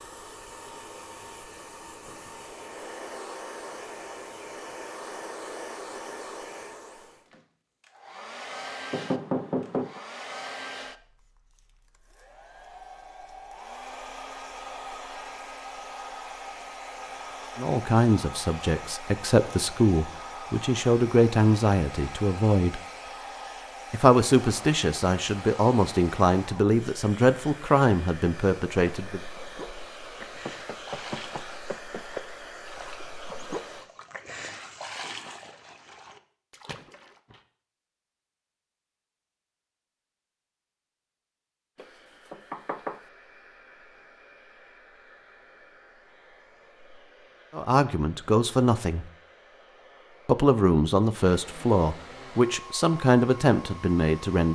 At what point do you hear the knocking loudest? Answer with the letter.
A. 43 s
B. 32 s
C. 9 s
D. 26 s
C.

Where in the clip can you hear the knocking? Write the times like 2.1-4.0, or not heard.
8.9-10.0, 30.2-32.2, 41.8-43.0.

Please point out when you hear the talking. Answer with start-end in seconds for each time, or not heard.
17.6-22.8, 23.9-29.2, 47.5-49.0, 50.2-54.4.